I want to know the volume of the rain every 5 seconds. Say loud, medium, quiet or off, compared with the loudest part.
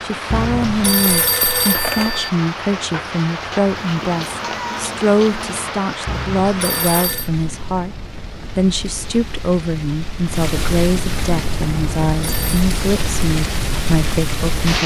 loud, medium, loud.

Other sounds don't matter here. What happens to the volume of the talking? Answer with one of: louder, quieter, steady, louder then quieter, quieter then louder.
steady.